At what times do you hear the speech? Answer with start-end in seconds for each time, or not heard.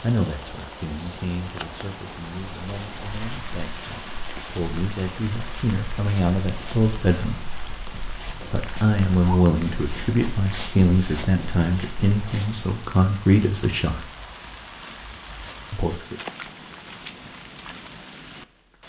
0.0-7.5, 8.5-14.1, 15.7-16.1.